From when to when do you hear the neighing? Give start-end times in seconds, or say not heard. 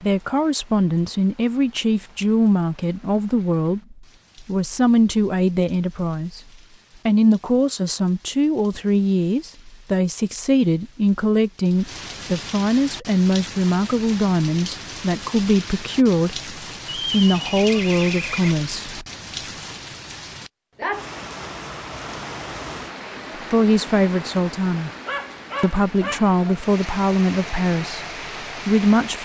16.9-18.6.